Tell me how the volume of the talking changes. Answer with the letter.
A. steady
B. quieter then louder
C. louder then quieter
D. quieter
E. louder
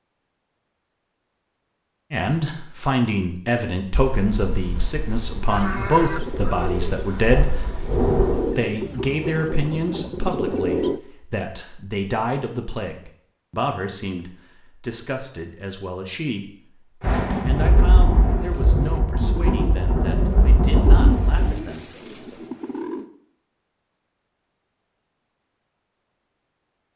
D.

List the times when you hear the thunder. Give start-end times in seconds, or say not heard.
4.0-8.6, 17.0-21.6.